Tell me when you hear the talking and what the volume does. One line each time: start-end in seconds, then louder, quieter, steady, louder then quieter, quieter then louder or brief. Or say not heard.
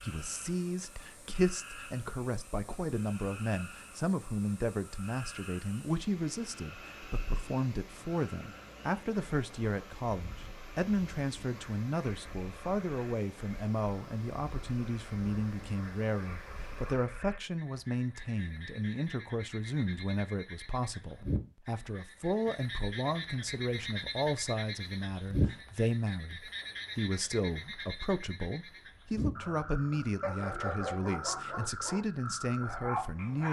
0.0-33.4 steady.